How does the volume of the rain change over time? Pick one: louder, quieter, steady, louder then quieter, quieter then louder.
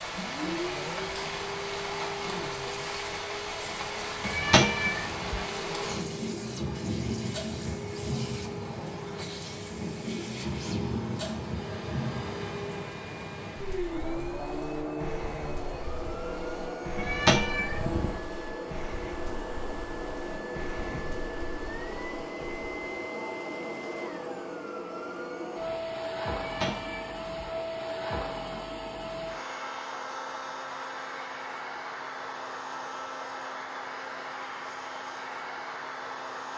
quieter.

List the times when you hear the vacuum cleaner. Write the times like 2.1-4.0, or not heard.
0.0-36.5.